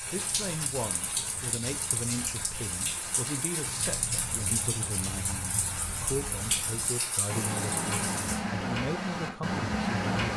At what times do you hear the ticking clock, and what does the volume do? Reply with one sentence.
The ticking clock can be heard from 0.0 to 10.3 s, getting louder.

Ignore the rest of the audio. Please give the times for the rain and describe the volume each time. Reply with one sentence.
You can hear the rain from 0.0 to 8.4 s, at a steady volume.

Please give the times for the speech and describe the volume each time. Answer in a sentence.
The speech can be heard from 0.1 to 10.3 s, at a steady volume.